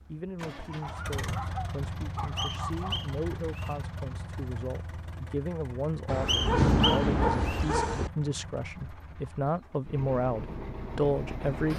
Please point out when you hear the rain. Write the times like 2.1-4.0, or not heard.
not heard.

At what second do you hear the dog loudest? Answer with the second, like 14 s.
7 s.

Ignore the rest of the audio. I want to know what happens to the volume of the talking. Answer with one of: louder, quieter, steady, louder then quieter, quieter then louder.
louder.